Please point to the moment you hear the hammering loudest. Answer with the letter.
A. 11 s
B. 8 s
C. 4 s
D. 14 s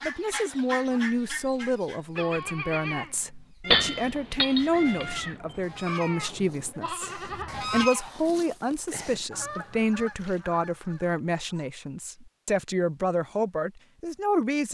C.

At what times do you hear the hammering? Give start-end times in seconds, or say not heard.
3.7-5.2.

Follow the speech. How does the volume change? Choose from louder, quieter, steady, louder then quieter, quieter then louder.
steady.